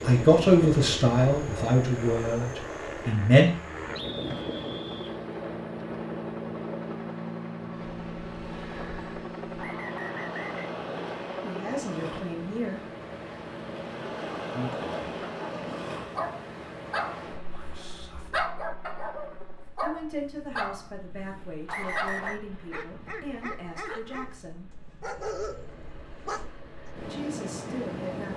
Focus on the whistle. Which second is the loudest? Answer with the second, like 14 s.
22 s.